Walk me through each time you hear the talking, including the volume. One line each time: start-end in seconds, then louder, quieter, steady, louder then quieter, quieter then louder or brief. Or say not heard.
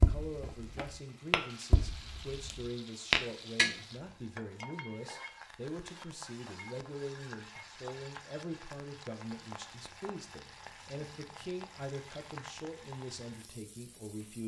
0.0-14.4 steady.